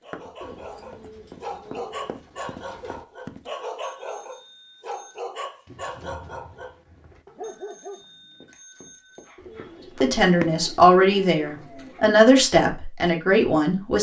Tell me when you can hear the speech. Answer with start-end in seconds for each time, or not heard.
10.0-13.9.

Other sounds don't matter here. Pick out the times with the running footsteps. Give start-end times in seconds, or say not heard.
0.1-3.5, 8.4-10.6.